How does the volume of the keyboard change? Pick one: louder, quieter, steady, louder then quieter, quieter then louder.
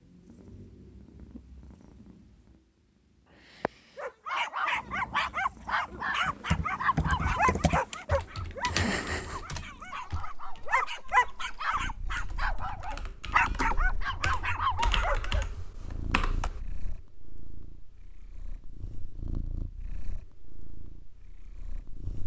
quieter then louder.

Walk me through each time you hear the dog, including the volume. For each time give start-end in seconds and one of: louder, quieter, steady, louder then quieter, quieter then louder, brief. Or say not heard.
4.0-15.4 quieter then louder.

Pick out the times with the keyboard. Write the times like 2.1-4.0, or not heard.
6.2-16.6.